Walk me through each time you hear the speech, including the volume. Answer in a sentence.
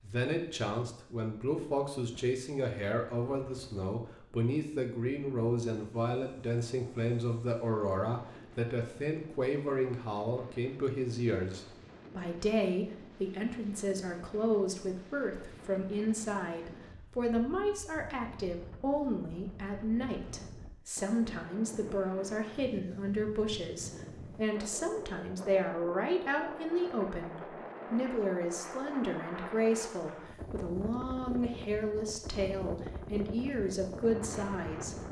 You can hear the speech from 0.0 to 35.0 s, at a steady volume.